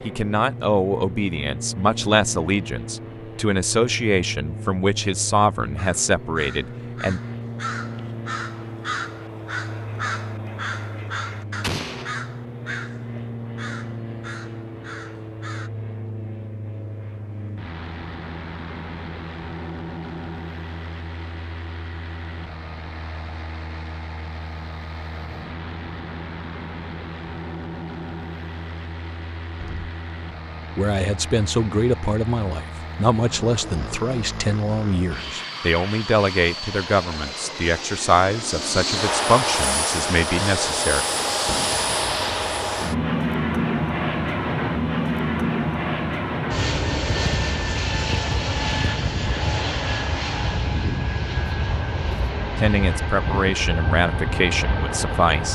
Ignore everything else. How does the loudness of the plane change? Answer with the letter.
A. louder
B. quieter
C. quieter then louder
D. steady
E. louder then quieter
A.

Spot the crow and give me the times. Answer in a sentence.
The crow can be heard from 5.8 to 15.7 s.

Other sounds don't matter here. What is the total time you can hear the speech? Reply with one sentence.
The speech can be heard for 20 seconds in total.